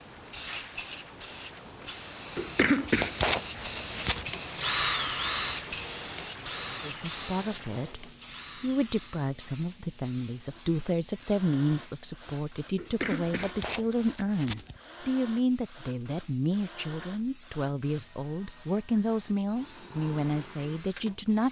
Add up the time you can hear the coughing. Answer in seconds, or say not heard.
4 s.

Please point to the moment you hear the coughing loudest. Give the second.
3 s.